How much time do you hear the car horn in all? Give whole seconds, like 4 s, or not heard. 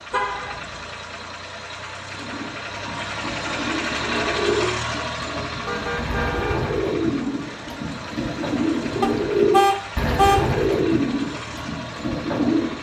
3 s.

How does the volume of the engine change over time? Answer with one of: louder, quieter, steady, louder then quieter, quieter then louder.
louder then quieter.